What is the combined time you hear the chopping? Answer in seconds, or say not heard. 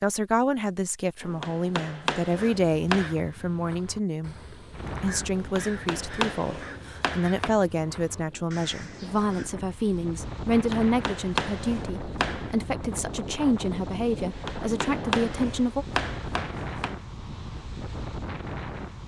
9 s.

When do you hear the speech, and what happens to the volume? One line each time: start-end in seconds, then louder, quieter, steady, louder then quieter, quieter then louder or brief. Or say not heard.
0.0-15.8 steady.